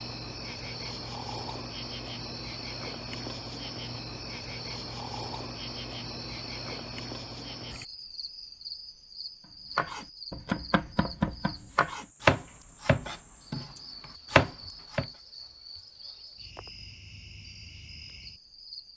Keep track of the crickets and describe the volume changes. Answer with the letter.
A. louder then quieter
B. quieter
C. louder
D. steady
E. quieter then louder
B.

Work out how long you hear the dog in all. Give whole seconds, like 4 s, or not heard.
not heard.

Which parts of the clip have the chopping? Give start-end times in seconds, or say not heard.
9.8-15.1.